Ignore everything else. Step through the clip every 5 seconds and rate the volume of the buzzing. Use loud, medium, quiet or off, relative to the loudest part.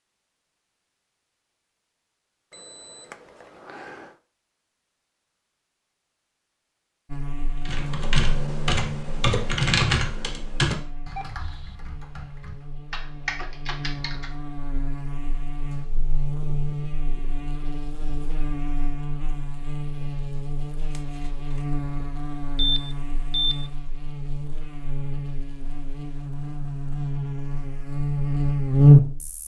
off, quiet, quiet, quiet, quiet, loud.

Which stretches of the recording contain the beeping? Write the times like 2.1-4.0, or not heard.
2.5-4.1, 11.2-11.8, 22.6-23.7.